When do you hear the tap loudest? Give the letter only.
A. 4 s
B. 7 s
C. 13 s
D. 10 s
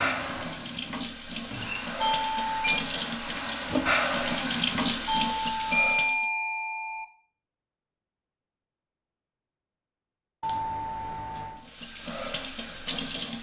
A.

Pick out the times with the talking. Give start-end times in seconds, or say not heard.
not heard.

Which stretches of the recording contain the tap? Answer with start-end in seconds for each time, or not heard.
0.0-6.2, 11.6-13.3.